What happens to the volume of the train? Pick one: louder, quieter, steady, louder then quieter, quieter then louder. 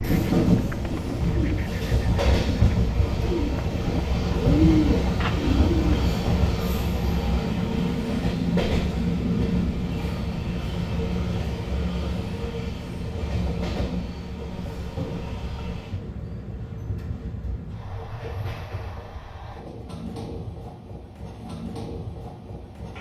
quieter.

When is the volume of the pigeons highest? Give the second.
5 s.